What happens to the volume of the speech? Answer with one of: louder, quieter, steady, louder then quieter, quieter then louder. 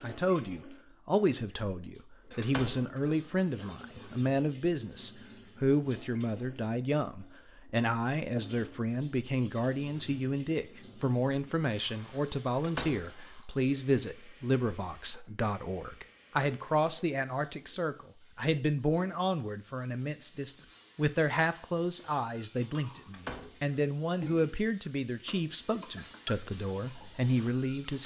steady.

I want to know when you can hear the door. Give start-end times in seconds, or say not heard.
1.9-3.0, 12.6-13.1, 23.1-23.8.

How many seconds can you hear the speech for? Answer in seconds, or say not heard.
28 s.